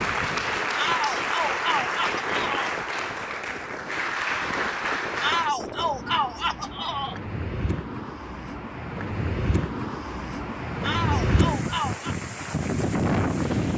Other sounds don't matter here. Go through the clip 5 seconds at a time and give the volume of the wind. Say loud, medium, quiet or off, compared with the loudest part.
medium, medium, loud.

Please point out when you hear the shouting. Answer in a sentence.
You can hear the shouting from 0.8 to 2.8 s, from 5.2 to 7.2 s and from 10.8 to 12.2 s.